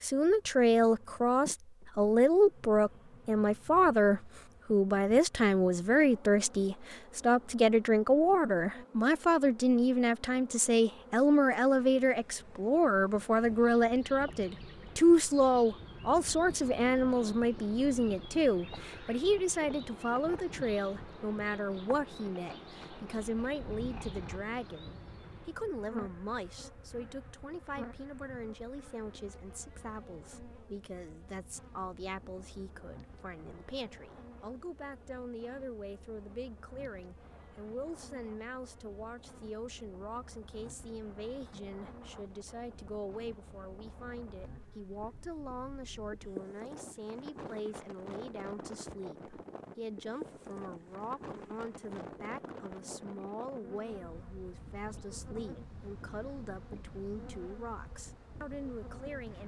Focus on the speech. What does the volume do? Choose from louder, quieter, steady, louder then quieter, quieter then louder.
quieter.